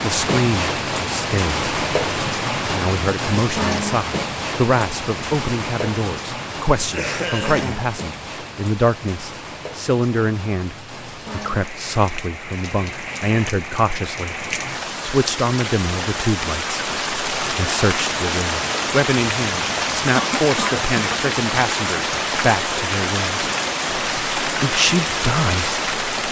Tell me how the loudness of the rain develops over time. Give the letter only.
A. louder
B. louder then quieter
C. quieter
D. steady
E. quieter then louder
E.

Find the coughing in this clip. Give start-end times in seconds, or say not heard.
6.8-7.9, 20.1-21.2.